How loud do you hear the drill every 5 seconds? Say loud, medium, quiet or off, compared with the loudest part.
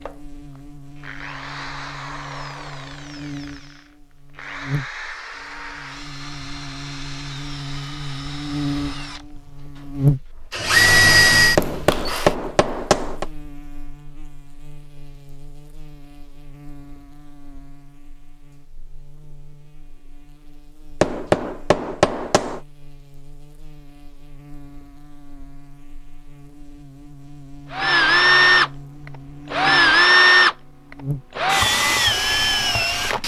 quiet, quiet, loud, off, off, loud, loud.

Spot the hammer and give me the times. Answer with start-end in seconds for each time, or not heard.
11.6-13.2, 21.0-22.6.